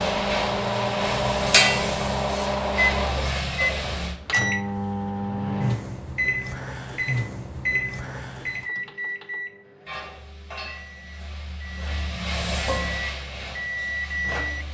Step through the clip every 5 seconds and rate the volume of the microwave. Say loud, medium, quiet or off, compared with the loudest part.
loud, loud, medium.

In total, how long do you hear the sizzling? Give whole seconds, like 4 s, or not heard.
9 s.